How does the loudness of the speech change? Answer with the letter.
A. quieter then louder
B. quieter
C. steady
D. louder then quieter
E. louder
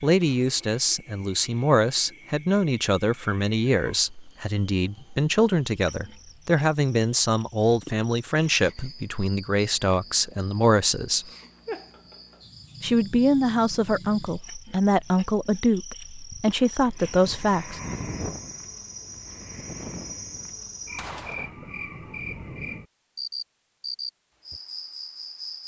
C.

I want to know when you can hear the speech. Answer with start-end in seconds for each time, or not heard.
0.0-11.2, 12.8-17.8.